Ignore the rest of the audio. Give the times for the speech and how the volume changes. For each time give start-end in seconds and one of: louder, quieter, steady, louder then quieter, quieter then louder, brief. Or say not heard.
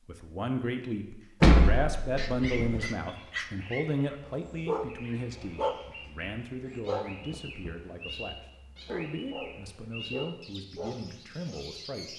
0.1-12.1 quieter.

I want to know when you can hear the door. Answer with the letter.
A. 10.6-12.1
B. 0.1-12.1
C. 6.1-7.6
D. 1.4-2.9
D.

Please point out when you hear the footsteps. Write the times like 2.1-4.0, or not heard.
not heard.